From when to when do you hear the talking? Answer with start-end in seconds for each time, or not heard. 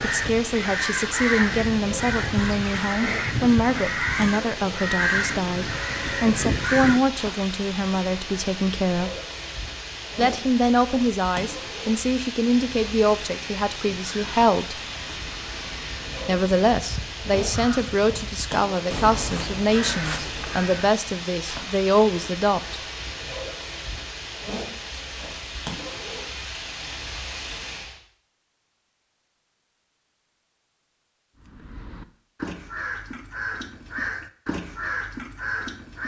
0.0-9.1, 10.2-14.8, 16.2-22.8.